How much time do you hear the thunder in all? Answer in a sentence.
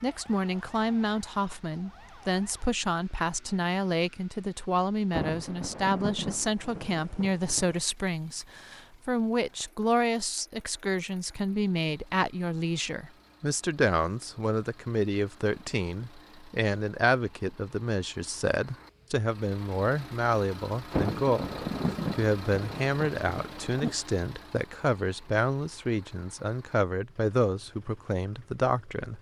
The thunder can be heard for 6 seconds in total.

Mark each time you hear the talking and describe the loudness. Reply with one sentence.
You can hear the talking from 0.0 to 29.1 s, at a steady volume.